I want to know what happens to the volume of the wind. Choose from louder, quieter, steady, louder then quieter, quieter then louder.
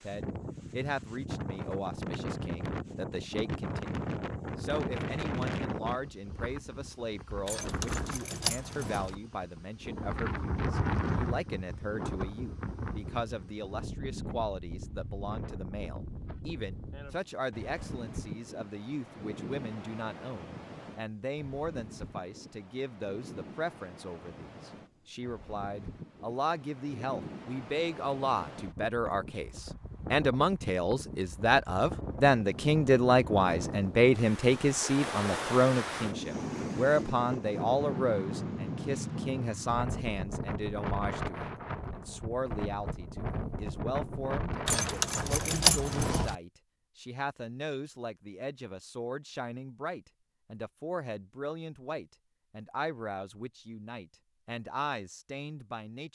quieter then louder.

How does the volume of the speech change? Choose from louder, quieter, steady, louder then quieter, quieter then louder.
louder then quieter.